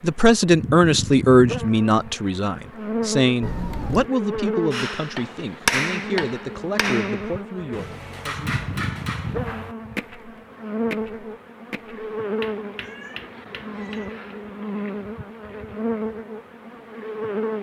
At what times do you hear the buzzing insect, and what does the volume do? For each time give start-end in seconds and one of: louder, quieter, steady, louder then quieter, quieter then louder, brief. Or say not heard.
0.0-17.5 steady.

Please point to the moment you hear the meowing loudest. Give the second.
4 s.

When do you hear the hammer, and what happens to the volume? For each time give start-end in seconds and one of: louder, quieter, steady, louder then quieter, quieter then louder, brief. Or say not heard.
4.7-14.2 quieter.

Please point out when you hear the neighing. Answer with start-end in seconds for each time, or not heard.
not heard.